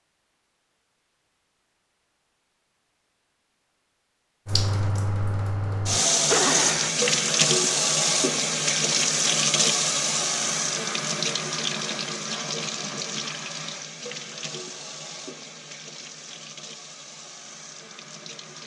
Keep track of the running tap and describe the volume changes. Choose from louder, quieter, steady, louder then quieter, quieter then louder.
quieter.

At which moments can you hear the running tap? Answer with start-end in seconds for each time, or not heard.
4.5-18.6.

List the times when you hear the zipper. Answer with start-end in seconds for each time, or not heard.
6.3-7.0.